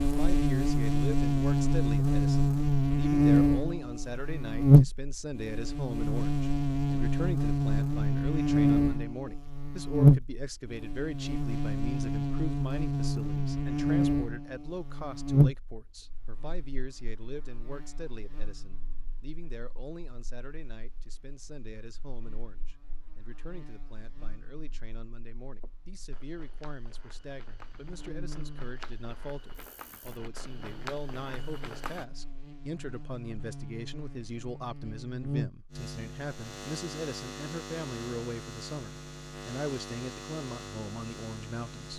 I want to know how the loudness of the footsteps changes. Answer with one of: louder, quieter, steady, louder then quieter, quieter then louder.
louder.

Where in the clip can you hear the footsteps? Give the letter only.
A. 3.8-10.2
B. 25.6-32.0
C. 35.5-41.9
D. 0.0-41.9
B.